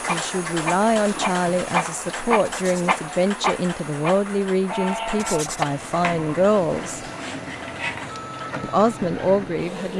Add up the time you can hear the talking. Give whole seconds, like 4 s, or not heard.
8 s.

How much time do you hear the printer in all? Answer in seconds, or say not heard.
10 s.